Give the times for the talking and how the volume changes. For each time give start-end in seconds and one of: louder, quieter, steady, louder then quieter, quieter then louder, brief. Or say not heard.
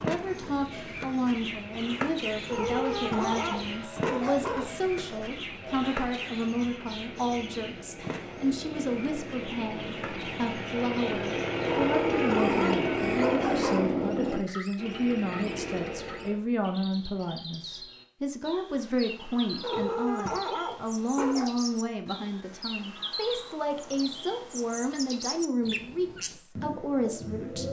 0.0-27.6 steady.